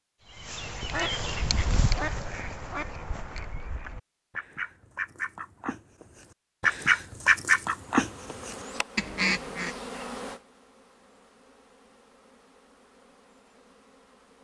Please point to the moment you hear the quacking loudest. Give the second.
7 s.